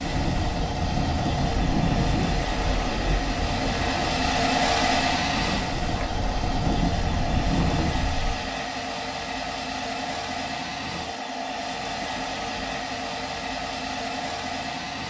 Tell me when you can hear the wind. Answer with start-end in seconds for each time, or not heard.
0.0-8.3.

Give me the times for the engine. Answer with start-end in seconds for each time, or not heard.
0.0-15.0.